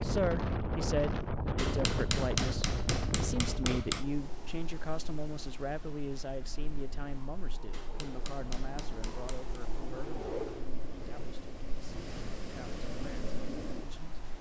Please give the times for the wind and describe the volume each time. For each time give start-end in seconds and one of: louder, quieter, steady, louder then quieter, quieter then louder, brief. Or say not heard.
0.0-14.3 quieter then louder.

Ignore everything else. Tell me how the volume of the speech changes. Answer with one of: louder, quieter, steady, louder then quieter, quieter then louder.
quieter.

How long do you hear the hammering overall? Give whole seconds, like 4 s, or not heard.
4 s.